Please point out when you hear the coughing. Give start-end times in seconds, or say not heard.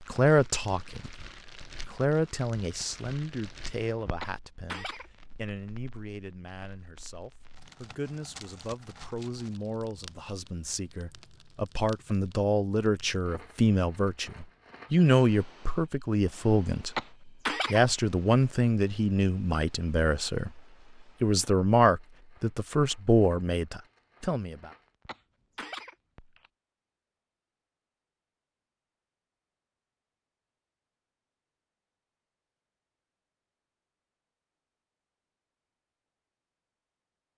4.2-5.1, 16.9-17.9, 25.1-26.5.